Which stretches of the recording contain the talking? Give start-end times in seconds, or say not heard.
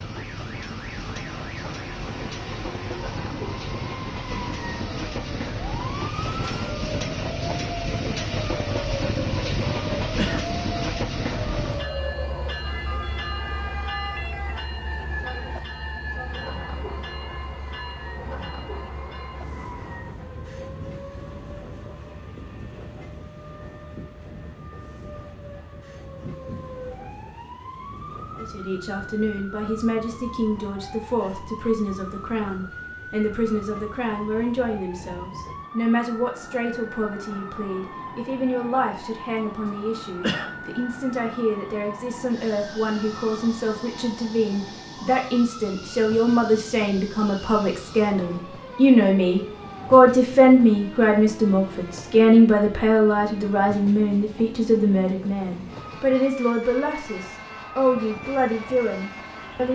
28.4-59.6.